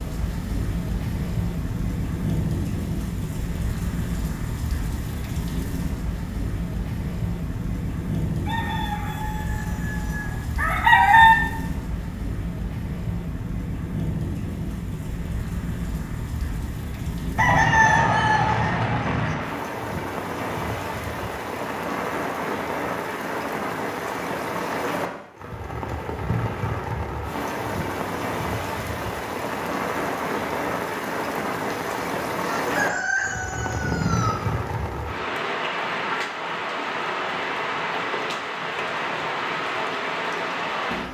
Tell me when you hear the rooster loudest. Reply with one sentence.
The volume of the rooster peaks at 11 seconds.